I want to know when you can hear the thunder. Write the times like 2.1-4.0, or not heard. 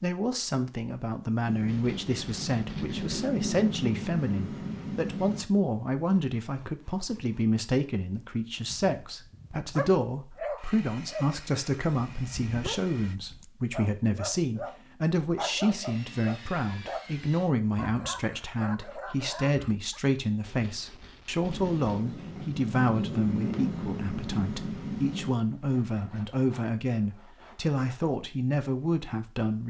1.4-5.5, 21.4-25.4.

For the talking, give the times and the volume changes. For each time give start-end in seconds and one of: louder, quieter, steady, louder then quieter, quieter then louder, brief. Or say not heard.
0.0-29.6 steady.